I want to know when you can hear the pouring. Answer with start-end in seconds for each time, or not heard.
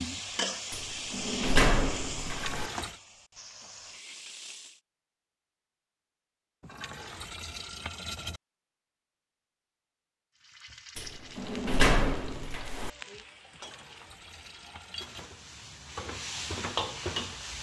2.2-3.0, 6.6-8.4, 13.5-15.3.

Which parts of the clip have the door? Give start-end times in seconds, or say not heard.
0.7-2.7, 10.9-12.9.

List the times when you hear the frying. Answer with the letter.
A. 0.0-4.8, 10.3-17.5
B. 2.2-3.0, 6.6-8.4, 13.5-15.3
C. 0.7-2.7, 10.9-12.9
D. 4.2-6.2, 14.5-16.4
A.